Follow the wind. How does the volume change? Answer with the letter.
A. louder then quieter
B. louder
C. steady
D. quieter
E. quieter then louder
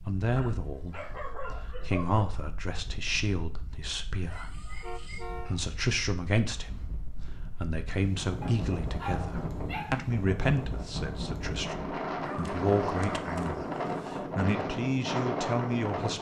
B.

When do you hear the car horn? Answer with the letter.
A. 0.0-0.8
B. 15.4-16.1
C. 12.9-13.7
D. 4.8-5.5
D.